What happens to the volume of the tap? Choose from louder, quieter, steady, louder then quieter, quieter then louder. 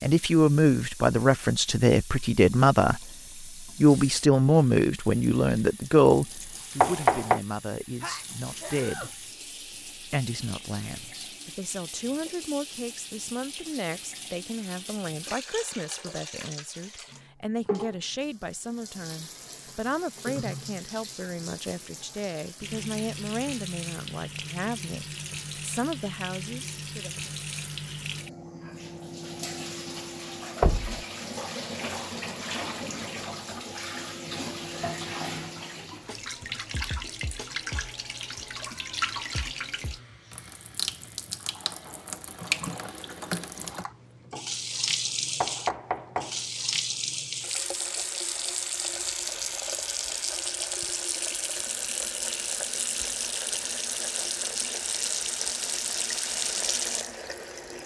louder.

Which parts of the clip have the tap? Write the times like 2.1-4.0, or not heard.
0.0-57.8.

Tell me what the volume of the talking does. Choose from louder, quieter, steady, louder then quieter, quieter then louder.
quieter.